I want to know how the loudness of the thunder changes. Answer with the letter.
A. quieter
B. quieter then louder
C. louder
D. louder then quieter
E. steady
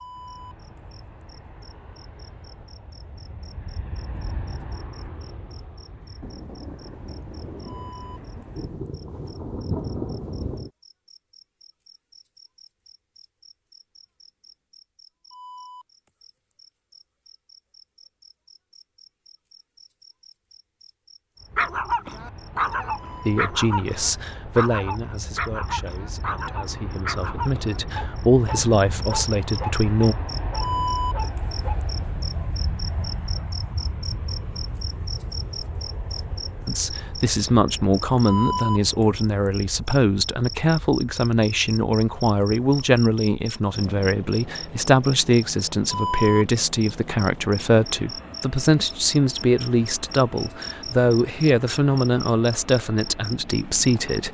C.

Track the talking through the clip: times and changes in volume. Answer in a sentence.
The talking can be heard from 23.2 to 30.1 s, getting quieter then louder; and from 36.6 to 54.2 s, at a steady volume.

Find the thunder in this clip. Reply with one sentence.
The thunder can be heard from 6.2 to 10.7 s.